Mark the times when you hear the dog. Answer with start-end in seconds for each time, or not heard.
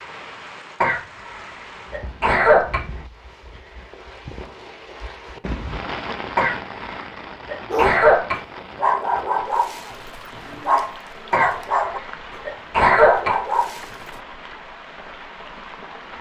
7.7-14.1.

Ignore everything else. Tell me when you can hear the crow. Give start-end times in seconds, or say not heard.
not heard.